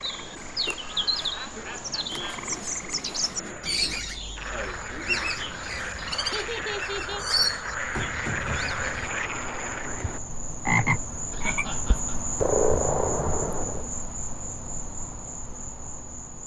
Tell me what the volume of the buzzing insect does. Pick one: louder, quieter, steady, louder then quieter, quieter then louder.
louder.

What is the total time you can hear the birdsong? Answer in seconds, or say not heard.
9 s.